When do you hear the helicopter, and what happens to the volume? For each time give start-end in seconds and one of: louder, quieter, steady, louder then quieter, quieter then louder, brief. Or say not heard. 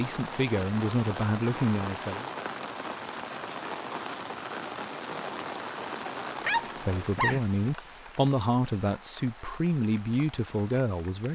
not heard.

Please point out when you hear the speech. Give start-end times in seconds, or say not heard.
0.0-2.2, 6.8-11.2.